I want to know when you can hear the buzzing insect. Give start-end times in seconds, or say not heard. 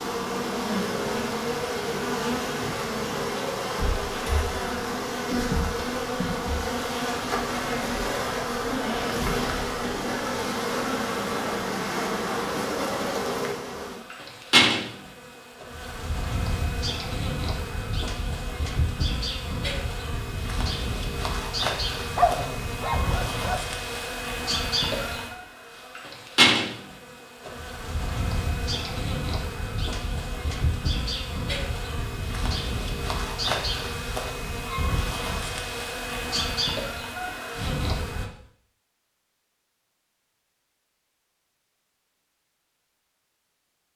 0.0-38.2.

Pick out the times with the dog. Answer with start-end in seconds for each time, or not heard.
22.1-23.6.